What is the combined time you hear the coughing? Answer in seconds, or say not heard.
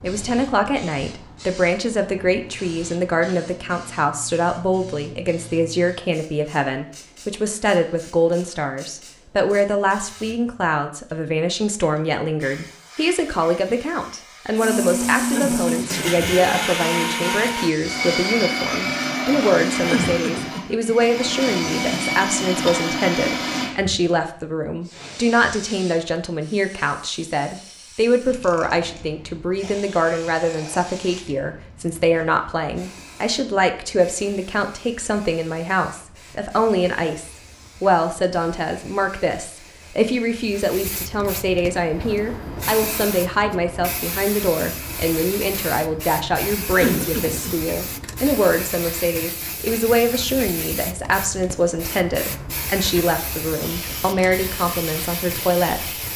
3 s.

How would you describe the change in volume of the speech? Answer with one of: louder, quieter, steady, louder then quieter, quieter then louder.
steady.